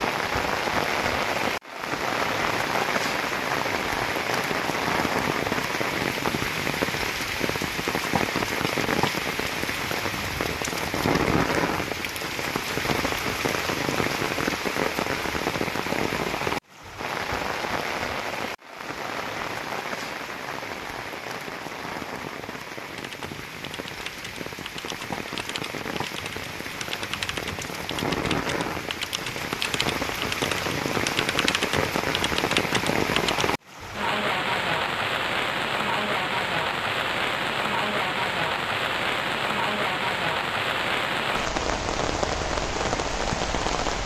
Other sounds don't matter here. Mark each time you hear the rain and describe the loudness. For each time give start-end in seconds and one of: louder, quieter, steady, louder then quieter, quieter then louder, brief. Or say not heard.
0.0-44.0 quieter then louder.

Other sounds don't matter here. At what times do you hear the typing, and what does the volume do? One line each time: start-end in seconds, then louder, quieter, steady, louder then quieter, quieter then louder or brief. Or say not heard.
22.9-33.4 louder.